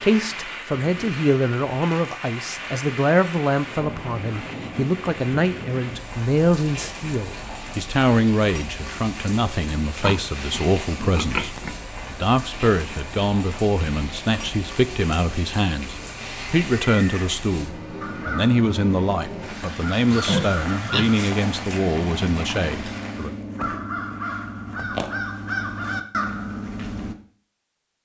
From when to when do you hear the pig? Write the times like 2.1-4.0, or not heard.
10.0-11.8, 20.1-21.8.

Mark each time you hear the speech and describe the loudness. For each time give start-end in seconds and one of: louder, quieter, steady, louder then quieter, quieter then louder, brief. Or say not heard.
0.0-23.4 steady.